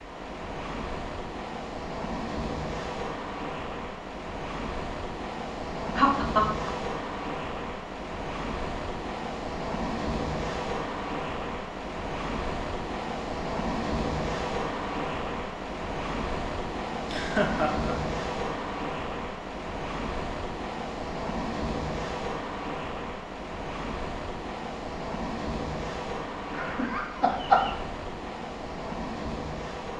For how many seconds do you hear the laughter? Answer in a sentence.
The laughter can be heard for 3 seconds in total.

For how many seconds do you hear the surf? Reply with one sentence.
You can hear the surf for 30 seconds altogether.